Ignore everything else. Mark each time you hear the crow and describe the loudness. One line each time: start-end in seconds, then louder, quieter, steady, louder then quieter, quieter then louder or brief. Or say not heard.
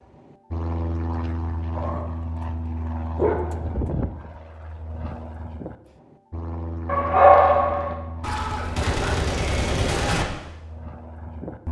not heard.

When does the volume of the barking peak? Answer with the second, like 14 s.
7 s.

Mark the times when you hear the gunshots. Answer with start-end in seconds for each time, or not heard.
8.2-10.2.